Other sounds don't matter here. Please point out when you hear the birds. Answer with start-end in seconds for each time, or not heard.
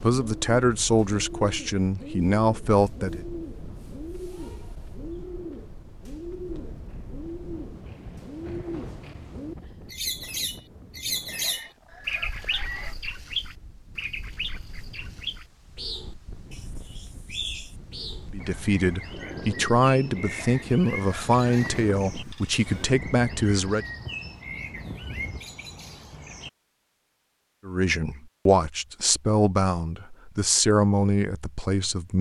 0.0-26.5.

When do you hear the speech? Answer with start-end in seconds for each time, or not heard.
0.0-3.2, 18.3-23.9, 27.6-32.1.